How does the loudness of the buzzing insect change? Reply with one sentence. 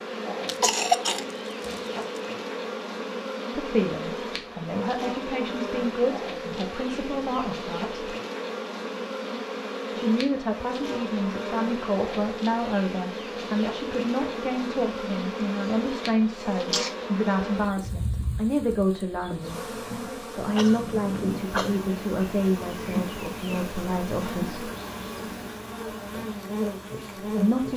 The volume of the buzzing insect stays about the same.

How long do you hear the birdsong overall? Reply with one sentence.
You can't hear the birdsong here.